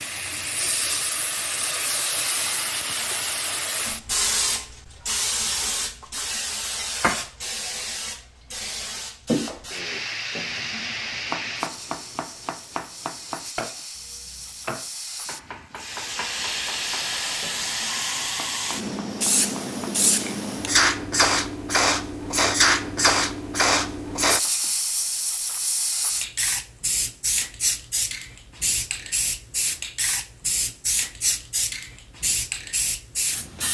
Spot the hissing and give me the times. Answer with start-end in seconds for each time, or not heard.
0.0-33.6.